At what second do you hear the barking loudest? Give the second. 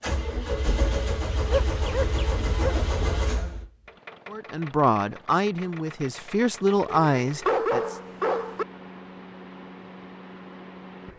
8 s.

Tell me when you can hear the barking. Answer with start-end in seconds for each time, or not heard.
1.4-2.9, 6.8-8.7.